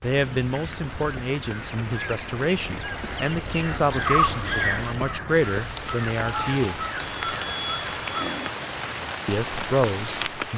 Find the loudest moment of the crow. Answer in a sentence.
The volume of the crow peaks at 4 seconds.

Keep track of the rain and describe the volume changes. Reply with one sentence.
The volume of the rain goes up.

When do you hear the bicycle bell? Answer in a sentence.
You can hear the bicycle bell from 1.9 to 2.8 s and from 7.0 to 8.5 s.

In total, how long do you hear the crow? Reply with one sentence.
The crow can be heard for 8 seconds in total.